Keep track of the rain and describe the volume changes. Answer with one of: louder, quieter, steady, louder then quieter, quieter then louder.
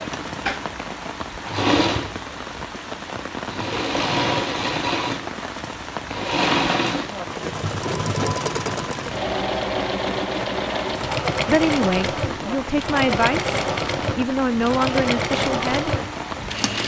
steady.